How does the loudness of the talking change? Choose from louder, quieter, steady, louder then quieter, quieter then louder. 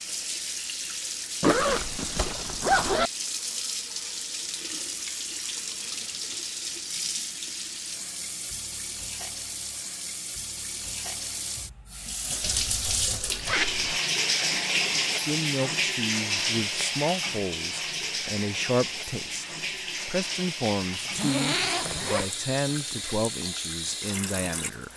steady.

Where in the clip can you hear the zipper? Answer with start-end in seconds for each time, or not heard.
1.4-3.1, 12.7-14.0, 21.1-22.9.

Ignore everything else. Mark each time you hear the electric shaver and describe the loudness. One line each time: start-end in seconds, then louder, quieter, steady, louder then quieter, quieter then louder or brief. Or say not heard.
not heard.